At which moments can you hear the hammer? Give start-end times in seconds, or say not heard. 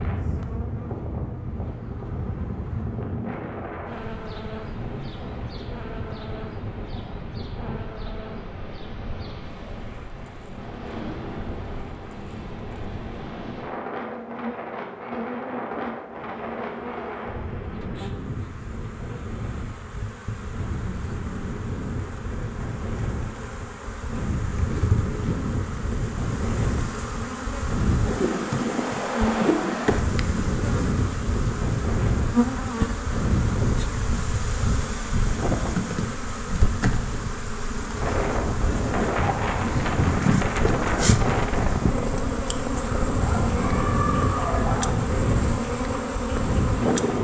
not heard.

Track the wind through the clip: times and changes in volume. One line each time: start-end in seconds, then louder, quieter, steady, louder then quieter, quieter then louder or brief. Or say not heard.
0.0-47.1 louder.